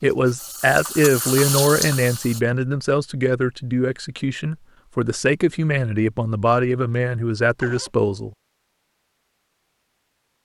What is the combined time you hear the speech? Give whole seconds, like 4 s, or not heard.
8 s.